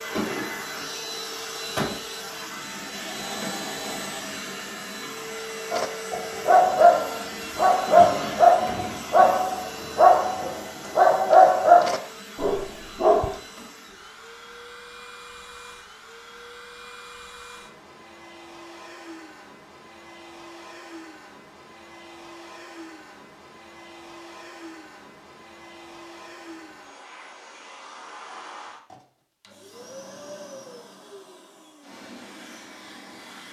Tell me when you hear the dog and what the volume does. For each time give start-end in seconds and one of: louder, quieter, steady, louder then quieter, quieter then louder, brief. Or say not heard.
5.7-13.3 steady.